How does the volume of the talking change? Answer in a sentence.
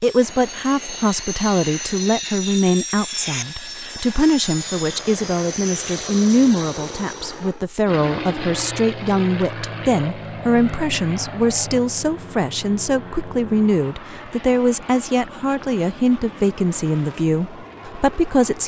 The loudness of the talking stays about the same.